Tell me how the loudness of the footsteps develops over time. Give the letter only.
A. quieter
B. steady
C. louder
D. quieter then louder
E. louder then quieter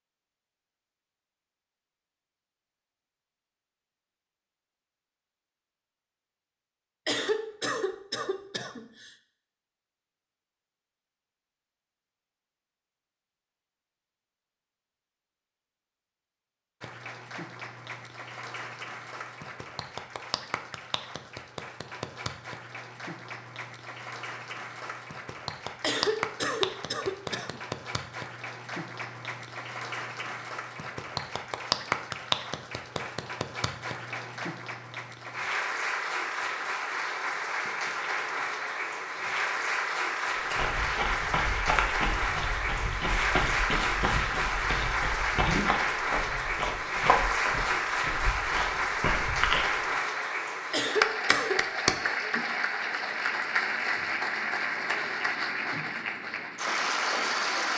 B.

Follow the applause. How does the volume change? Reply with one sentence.
The loudness of the applause goes up.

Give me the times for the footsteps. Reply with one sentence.
You can hear the footsteps from 40.4 to 50.0 s.